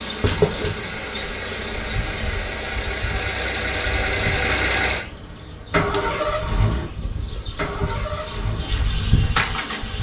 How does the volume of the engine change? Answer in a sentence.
The volume of the engine goes up, then down.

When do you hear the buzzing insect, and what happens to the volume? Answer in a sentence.
The buzzing insect can be heard from 0.0 to 9.9 s, getting quieter then louder.